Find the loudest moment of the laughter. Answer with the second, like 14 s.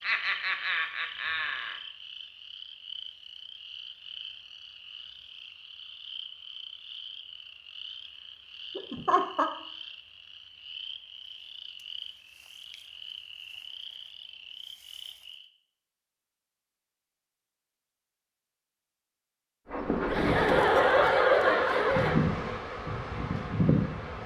21 s.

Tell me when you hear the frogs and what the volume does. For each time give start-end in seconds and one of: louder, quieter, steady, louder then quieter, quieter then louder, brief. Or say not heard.
0.0-15.5 steady.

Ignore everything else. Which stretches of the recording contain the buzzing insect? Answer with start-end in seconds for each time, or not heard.
19.6-24.2.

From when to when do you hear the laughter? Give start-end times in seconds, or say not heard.
0.0-1.8, 8.8-9.5, 20.1-22.3.